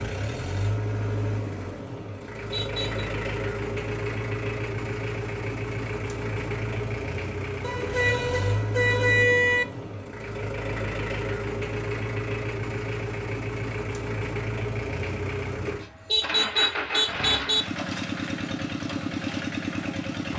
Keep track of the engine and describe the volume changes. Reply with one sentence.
The volume of the engine stays about the same.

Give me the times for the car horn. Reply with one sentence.
The car horn can be heard from 2.2 to 3.1 s, from 7.6 to 9.7 s and from 15.8 to 17.6 s.